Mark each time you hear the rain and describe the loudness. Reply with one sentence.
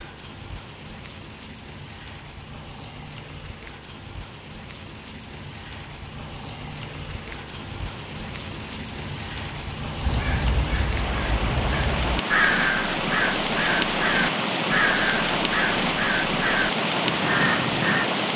The rain can be heard from 0.0 to 18.3 s, getting louder.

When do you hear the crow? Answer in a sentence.
You can hear the crow from 10.0 to 18.1 s.